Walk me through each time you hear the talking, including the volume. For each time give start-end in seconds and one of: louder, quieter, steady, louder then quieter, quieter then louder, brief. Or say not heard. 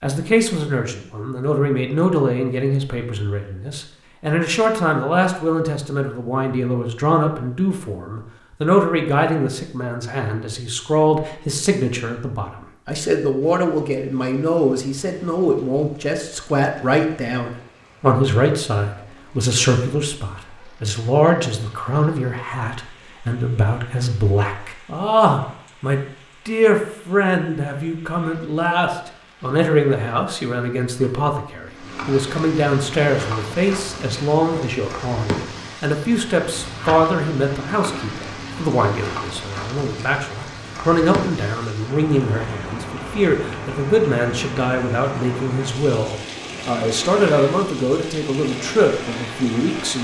0.0-49.9 steady.